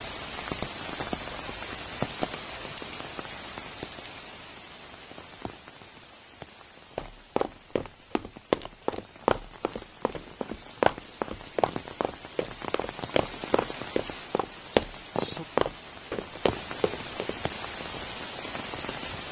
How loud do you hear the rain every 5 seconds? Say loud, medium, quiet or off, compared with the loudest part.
loud, quiet, medium, loud.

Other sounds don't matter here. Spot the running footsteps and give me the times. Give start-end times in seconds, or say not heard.
7.0-17.4.